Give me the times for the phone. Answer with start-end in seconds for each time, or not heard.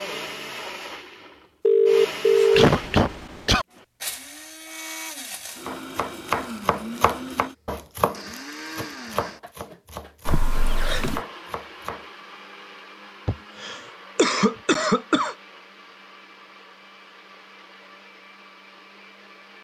1.6-2.6.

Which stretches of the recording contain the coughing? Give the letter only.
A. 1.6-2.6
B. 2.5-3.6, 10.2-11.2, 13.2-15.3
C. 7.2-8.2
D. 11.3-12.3
B.